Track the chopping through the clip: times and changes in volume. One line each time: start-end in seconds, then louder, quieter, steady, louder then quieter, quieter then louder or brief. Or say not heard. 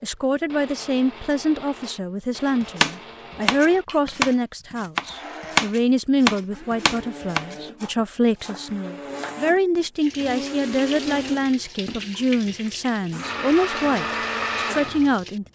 2.6-9.4 louder then quieter.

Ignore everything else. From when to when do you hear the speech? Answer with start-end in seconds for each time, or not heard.
0.0-15.4.